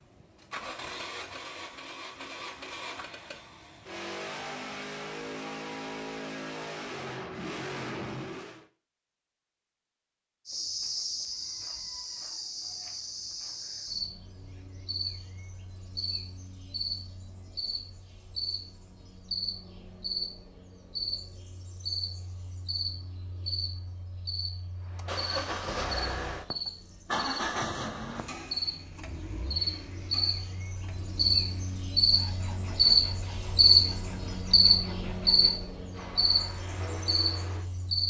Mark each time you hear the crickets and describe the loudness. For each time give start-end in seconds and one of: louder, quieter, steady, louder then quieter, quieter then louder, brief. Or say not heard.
10.4-38.0 louder.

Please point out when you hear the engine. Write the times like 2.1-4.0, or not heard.
0.0-8.7, 24.9-37.9.